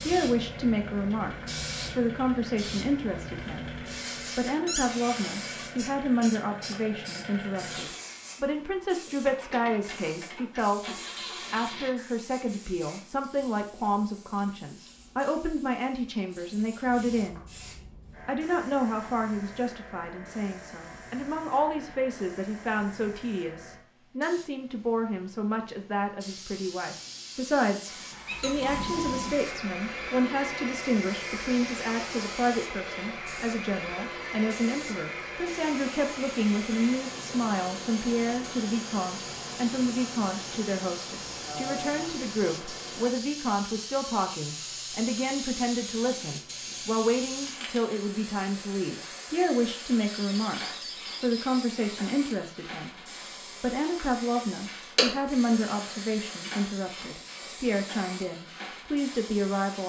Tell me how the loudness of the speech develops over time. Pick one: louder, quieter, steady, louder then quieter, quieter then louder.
steady.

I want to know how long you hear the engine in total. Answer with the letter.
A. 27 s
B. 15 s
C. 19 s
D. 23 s
A.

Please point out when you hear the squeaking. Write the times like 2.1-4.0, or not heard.
4.7-5.7, 28.2-28.8, 50.0-51.6.